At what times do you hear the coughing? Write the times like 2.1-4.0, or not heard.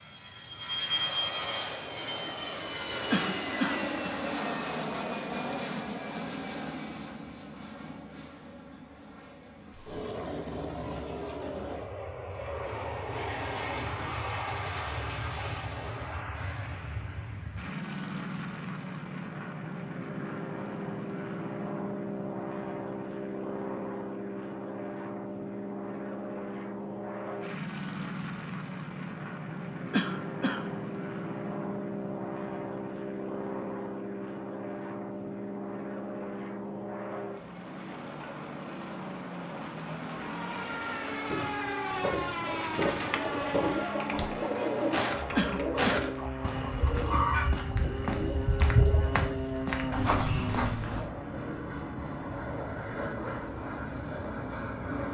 3.1-4.2, 29.9-30.7, 45.4-46.1.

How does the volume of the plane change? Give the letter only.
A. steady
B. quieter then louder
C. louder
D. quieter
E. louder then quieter
A.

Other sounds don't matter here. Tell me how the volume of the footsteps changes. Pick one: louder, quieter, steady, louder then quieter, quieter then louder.
steady.